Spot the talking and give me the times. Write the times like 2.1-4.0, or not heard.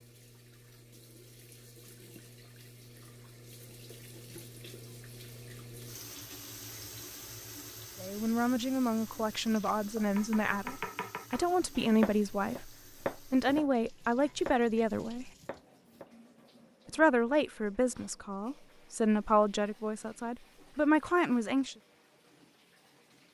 8.0-15.3, 16.9-21.8.